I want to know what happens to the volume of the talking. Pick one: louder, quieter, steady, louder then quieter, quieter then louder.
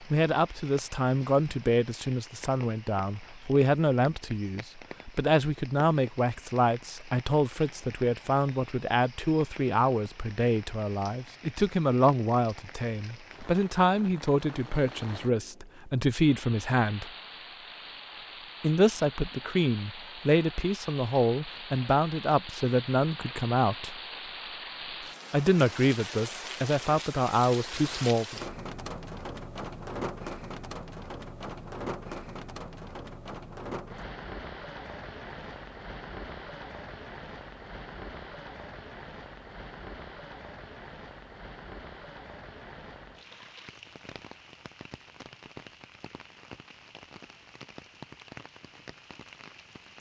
steady.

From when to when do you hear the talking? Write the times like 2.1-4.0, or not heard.
0.0-17.1, 18.6-23.9, 25.3-28.4.